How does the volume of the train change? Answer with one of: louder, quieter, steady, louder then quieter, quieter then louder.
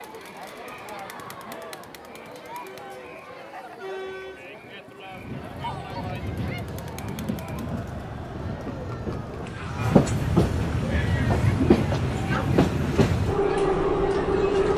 louder.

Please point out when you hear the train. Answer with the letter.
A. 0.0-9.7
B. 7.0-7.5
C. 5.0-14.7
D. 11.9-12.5
C.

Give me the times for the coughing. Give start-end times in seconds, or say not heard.
11.9-12.5.